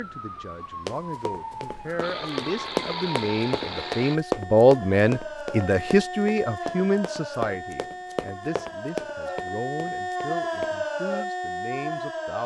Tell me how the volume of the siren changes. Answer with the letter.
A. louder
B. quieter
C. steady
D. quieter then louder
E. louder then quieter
A.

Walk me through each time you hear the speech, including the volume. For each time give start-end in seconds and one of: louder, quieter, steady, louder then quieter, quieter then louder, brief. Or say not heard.
0.0-12.4 louder then quieter.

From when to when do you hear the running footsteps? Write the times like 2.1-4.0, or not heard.
0.8-10.8.